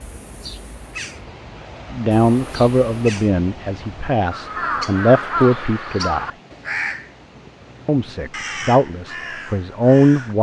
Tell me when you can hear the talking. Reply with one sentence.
The talking can be heard from 1.9 to 6.3 s and from 7.8 to 10.3 s.